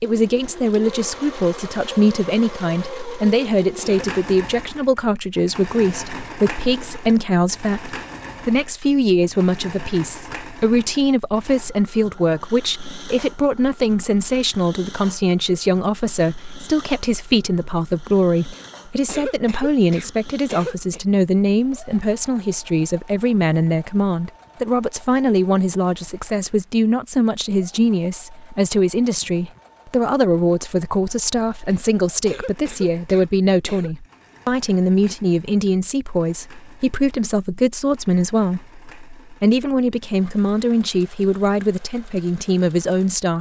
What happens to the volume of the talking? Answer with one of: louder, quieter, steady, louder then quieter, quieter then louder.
steady.